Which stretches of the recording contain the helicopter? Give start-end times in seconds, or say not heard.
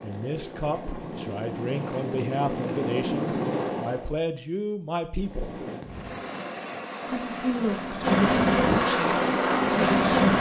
0.0-4.1, 5.2-10.3.